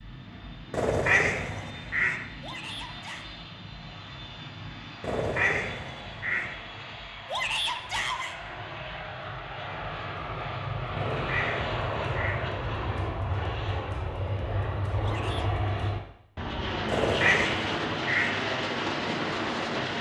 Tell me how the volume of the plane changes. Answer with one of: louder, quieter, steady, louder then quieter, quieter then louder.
louder.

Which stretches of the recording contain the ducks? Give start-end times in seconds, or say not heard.
0.7-2.2, 5.0-6.5, 10.9-12.4, 16.9-18.4.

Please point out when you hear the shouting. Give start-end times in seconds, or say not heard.
2.4-3.2, 7.2-8.3, 15.0-15.5.